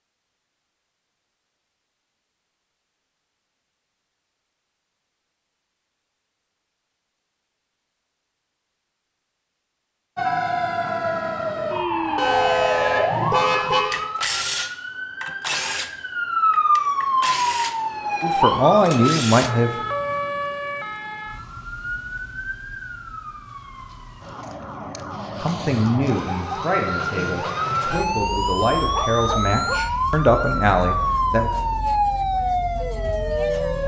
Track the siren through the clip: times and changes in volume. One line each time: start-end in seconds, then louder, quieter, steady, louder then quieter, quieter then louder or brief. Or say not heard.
10.2-33.8 quieter then louder.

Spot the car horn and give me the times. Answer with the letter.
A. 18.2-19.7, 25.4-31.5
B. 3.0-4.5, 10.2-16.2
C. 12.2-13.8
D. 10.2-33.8
C.